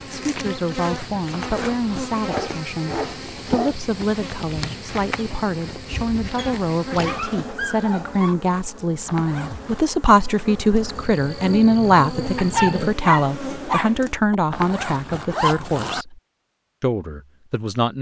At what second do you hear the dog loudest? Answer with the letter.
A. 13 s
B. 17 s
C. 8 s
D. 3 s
A.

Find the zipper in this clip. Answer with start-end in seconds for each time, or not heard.
1.3-2.1, 9.1-9.8, 14.5-16.1.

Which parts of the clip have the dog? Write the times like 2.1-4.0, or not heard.
2.2-3.8, 6.3-8.3, 12.3-14.3.